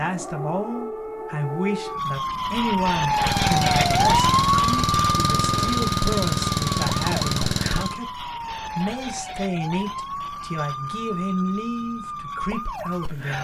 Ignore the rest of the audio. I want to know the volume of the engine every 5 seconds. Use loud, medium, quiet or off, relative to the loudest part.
loud, loud, off.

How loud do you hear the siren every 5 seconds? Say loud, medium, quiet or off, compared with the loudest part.
loud, medium, medium.